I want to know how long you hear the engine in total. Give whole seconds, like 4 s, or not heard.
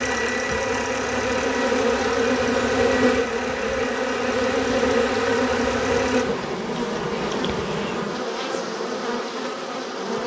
6 s.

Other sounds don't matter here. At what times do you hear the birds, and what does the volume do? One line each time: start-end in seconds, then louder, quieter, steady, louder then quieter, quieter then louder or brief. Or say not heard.
not heard.